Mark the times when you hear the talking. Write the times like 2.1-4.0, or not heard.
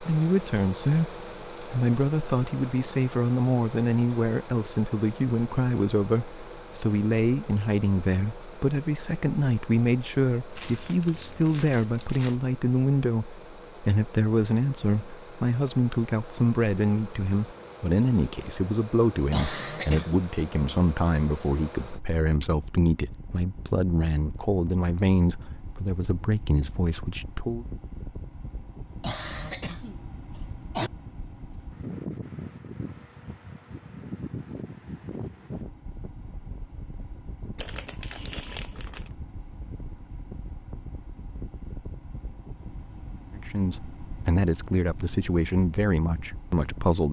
0.0-27.6, 43.4-47.0.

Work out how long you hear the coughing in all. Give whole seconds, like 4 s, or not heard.
3 s.